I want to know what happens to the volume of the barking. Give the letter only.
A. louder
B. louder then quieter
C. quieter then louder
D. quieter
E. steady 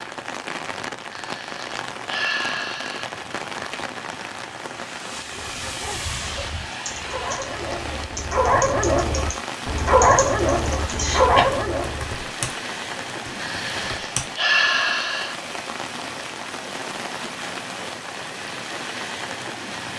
A.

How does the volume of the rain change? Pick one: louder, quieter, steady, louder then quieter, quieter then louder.
steady.